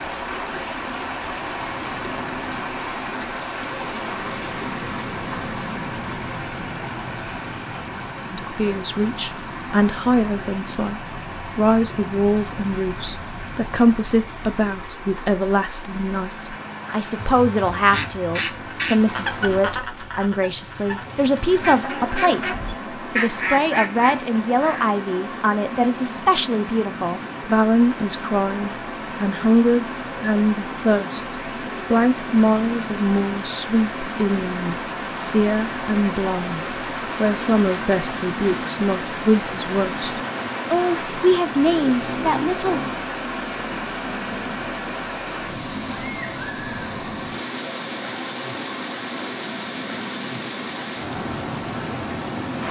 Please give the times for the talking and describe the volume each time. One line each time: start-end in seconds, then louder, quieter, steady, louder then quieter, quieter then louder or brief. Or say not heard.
8.3-42.8 steady.